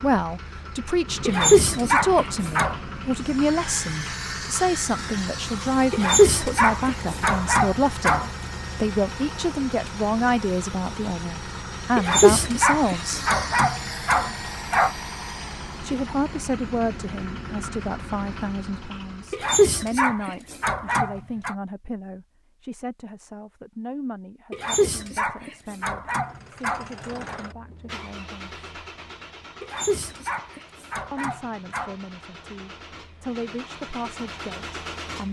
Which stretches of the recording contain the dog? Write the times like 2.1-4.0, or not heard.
1.2-2.8, 5.9-8.3, 11.9-14.9, 19.3-21.6, 24.5-27.4, 29.6-31.9.